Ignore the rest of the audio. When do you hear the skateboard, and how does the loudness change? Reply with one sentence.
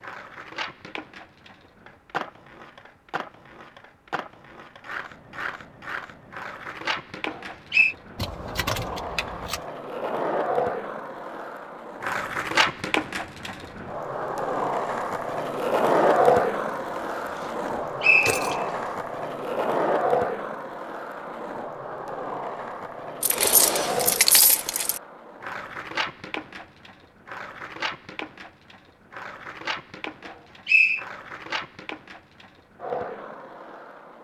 The skateboard can be heard from 0.0 to 34.2 s, getting louder then quieter.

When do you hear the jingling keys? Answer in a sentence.
The jingling keys can be heard from 8.2 to 9.7 s, from 17.4 to 18.6 s and from 23.2 to 25.0 s.